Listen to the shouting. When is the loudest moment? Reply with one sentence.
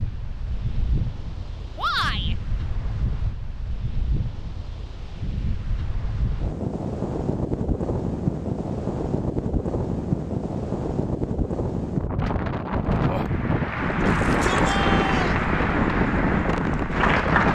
The loudest moment of the shouting is at 2 seconds.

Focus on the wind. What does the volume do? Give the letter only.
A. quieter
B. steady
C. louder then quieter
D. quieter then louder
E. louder
E.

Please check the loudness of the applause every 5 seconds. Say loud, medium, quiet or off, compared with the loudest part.
off, off, loud, loud.